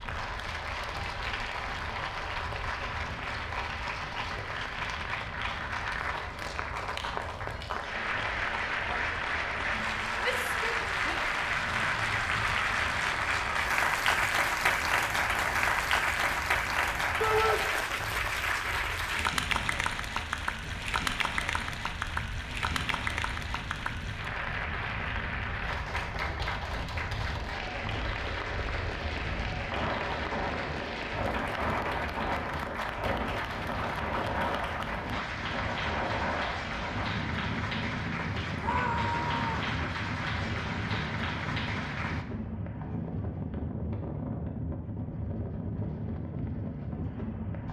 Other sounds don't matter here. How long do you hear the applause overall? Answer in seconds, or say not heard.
42 s.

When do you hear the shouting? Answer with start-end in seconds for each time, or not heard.
10.2-11.2, 17.2-17.6, 38.5-39.8.